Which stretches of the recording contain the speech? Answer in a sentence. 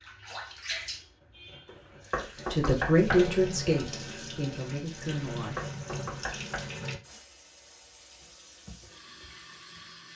The speech can be heard from 2.5 to 5.6 s.